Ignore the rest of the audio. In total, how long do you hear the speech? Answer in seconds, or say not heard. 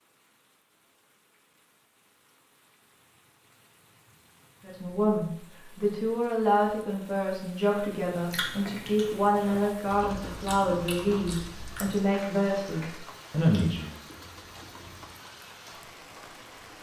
9 s.